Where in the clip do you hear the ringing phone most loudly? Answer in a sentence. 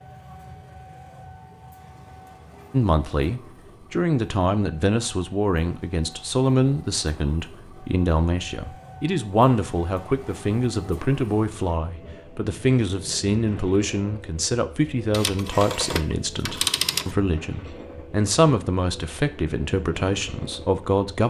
The volume of the ringing phone peaks at 17 seconds.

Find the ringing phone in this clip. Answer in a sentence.
The ringing phone can be heard from 15.1 to 17.1 s.